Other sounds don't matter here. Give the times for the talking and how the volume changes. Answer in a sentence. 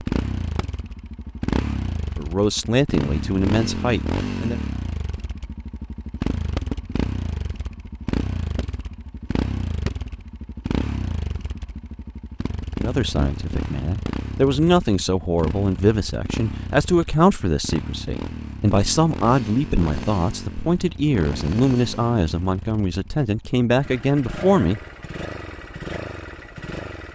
The talking can be heard briefly from 2.1 to 4.6 s; and from 12.8 to 24.8 s, at a steady volume.